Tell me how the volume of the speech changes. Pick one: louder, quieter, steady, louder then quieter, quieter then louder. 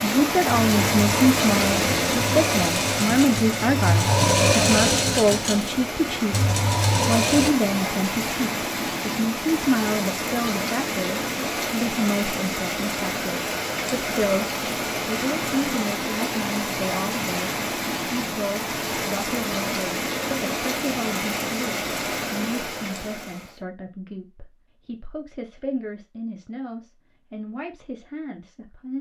quieter.